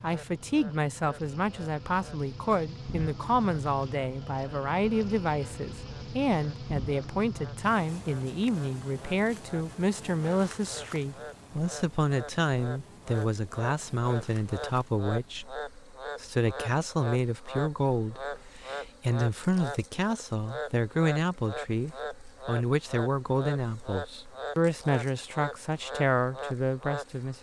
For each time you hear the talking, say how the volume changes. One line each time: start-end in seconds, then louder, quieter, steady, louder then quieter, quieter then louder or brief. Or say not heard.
0.0-27.3 steady.